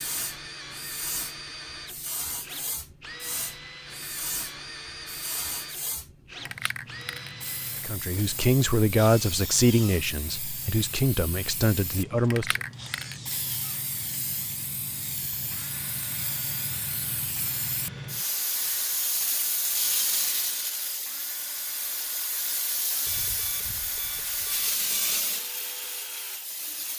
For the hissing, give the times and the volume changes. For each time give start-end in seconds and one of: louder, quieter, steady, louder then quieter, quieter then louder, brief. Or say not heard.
0.0-26.9 louder.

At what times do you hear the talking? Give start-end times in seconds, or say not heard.
7.8-12.6.